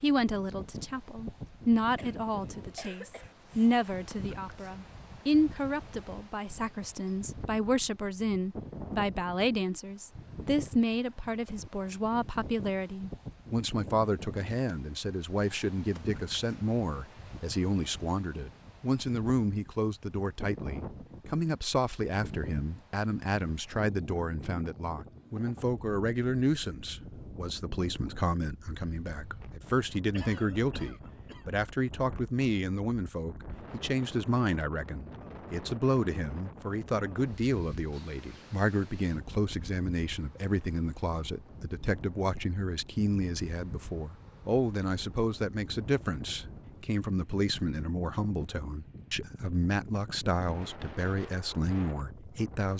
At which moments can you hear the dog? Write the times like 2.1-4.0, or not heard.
not heard.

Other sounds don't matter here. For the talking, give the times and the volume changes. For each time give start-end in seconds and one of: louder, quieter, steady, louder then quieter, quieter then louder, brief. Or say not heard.
0.0-52.7 steady.